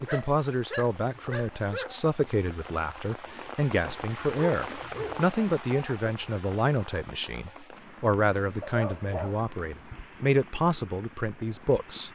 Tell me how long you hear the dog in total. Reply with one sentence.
The dog can be heard for 4 seconds in total.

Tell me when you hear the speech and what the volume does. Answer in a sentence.
You can hear the speech from 0.0 to 12.1 s, at a steady volume.